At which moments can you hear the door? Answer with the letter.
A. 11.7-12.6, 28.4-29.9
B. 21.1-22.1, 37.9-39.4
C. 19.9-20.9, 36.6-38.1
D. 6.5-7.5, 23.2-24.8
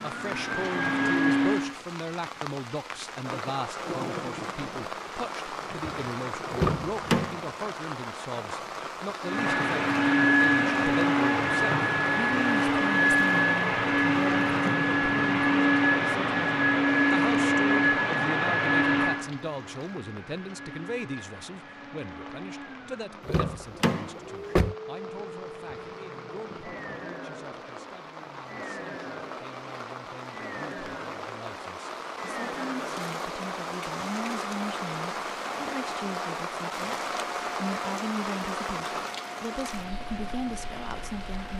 D.